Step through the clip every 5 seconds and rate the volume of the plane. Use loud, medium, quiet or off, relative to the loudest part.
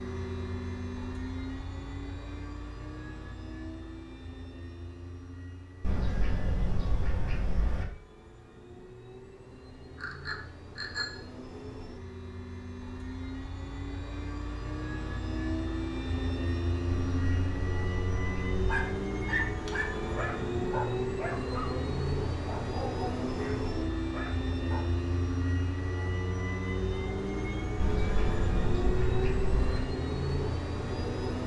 medium, quiet, medium, loud, loud, loud, loud.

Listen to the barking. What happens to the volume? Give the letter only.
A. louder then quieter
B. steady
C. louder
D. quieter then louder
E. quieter
E.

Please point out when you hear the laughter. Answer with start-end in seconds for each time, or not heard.
not heard.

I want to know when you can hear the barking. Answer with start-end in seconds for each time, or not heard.
18.6-24.9.